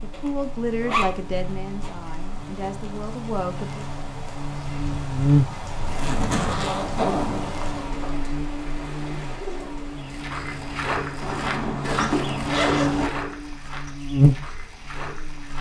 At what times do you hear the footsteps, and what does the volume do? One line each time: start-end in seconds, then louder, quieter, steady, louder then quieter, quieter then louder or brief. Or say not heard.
9.9-15.5 quieter.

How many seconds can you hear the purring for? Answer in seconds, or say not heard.
not heard.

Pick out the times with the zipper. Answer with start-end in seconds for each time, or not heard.
0.1-1.9, 5.8-8.1, 11.2-13.1.